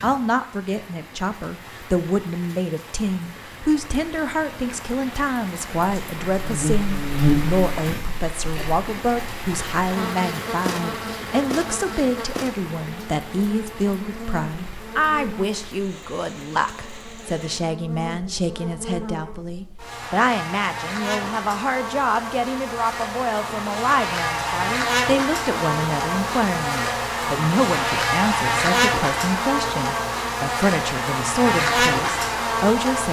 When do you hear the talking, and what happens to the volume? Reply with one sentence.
You can hear the talking from 0.0 to 33.0 s, at a steady volume.